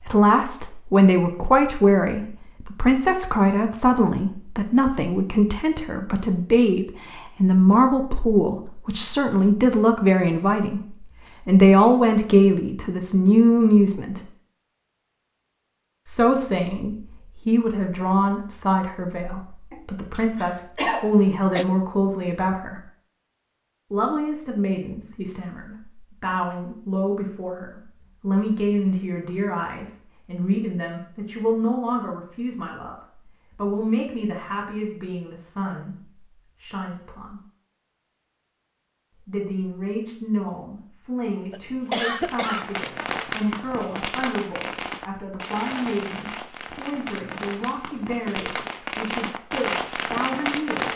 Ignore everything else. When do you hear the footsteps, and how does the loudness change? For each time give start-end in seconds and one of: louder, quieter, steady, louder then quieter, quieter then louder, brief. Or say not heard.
not heard.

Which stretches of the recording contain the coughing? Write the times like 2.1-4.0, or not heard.
19.7-21.6, 41.5-42.6.